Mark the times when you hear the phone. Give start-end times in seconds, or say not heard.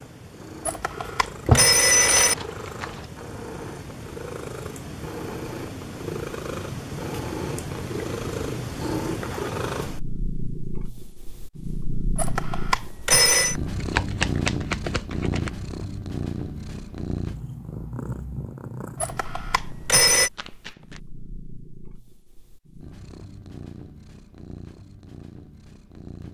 0.7-2.4, 12.2-13.6, 19.0-20.3.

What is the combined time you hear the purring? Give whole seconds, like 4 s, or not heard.
26 s.